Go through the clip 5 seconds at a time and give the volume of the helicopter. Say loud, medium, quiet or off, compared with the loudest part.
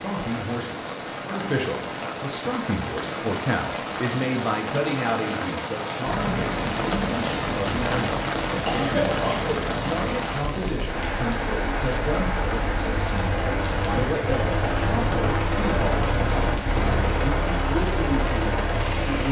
off, medium, loud, loud.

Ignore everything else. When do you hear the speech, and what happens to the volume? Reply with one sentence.
The speech can be heard from 0.0 to 19.2 s, at a steady volume.